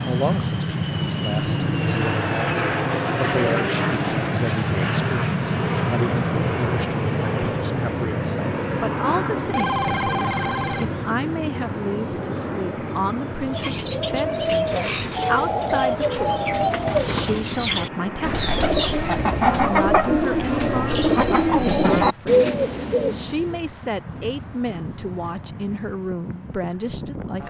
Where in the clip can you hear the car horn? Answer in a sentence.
You can't hear the car horn here.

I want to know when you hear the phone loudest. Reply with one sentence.
The volume of the phone peaks at 10 seconds.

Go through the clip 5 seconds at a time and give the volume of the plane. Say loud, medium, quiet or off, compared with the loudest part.
loud, loud, medium, medium, quiet, quiet.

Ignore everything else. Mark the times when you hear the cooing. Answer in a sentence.
The cooing can be heard from 13.4 to 23.6 s.